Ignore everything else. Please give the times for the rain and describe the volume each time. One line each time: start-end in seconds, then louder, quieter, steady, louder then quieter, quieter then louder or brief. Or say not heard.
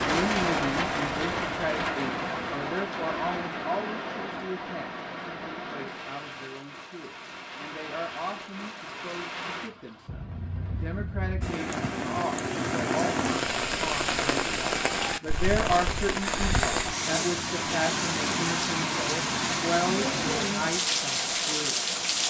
0.0-22.2 quieter then louder.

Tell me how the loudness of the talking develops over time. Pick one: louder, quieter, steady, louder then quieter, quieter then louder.
quieter then louder.